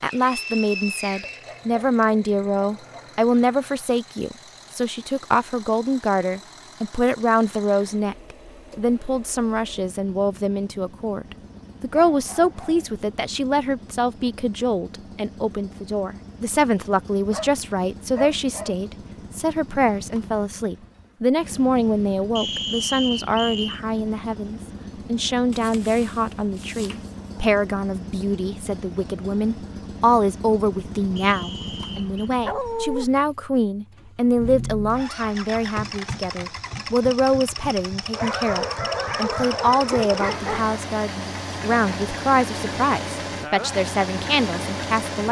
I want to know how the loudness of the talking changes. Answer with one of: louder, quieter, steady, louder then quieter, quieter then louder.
steady.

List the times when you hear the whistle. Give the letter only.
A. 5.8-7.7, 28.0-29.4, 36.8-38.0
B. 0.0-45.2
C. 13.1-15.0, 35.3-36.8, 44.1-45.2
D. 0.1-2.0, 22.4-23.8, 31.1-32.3
D.